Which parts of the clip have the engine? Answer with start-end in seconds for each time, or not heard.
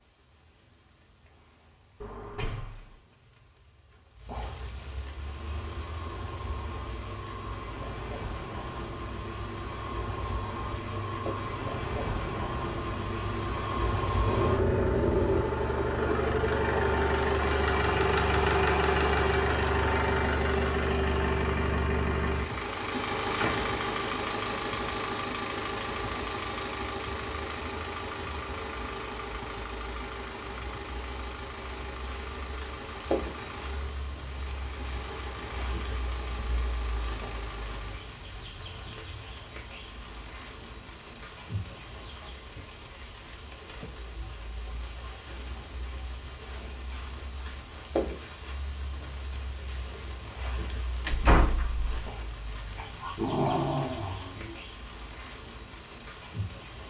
5.0-38.2.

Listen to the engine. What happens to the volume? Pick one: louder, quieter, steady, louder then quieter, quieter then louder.
louder then quieter.